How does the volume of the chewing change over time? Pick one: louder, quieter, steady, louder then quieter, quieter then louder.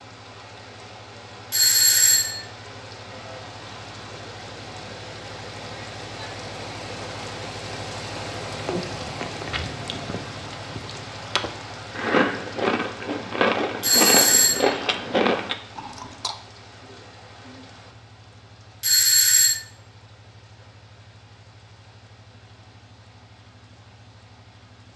louder.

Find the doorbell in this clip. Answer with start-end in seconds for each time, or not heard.
1.5-2.4, 13.8-14.8, 18.8-19.6.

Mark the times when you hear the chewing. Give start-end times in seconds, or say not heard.
8.4-16.4.